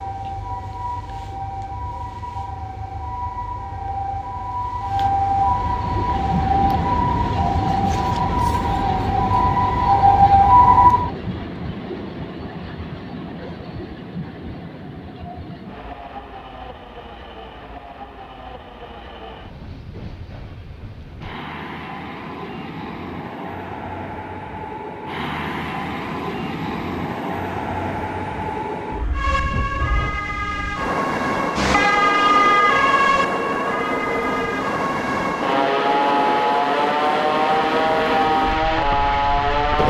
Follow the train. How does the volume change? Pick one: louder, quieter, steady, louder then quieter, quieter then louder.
quieter then louder.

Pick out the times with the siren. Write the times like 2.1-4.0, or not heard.
0.0-11.1, 29.1-39.8.